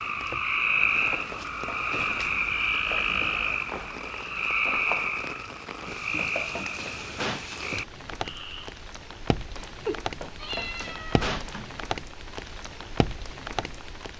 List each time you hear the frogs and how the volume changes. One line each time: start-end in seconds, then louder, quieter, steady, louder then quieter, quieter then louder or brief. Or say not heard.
0.0-8.8 quieter.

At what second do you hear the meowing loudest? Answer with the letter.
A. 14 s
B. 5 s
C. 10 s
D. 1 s
C.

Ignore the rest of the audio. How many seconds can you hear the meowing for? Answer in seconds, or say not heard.
2 s.